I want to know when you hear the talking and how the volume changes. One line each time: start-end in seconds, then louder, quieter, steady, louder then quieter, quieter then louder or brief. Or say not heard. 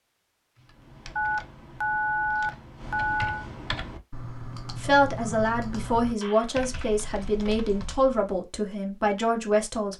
4.8-9.9 steady.